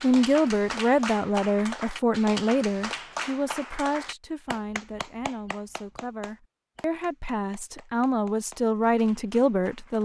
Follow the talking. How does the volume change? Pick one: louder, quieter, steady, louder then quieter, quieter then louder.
quieter then louder.